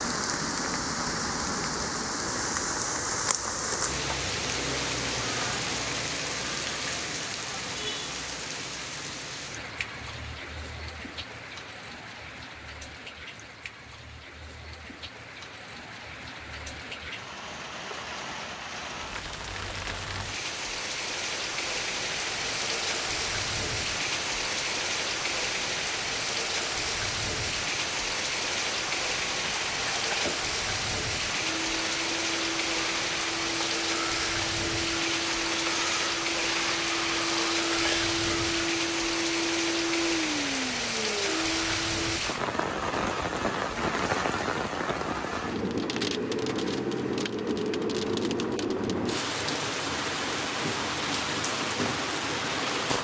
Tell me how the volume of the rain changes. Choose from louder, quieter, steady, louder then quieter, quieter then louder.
quieter then louder.